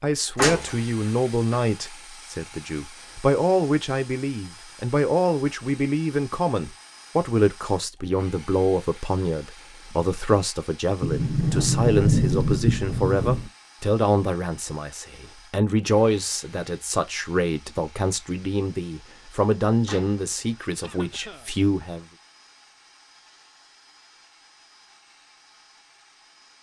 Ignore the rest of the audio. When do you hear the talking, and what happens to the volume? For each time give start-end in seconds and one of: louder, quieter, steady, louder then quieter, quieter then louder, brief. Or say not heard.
0.0-22.1 steady.